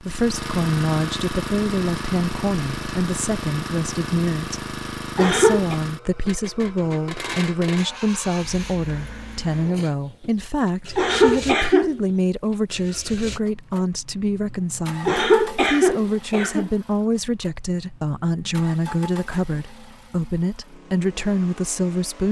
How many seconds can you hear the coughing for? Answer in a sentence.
You can hear the coughing for 3 seconds altogether.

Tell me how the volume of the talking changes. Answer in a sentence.
The loudness of the talking stays about the same.